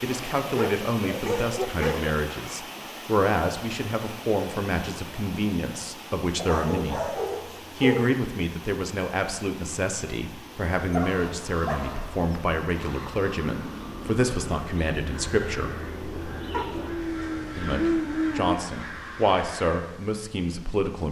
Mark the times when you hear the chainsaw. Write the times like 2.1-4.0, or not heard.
not heard.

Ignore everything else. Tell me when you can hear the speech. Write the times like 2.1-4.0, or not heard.
0.0-15.8, 17.6-21.0.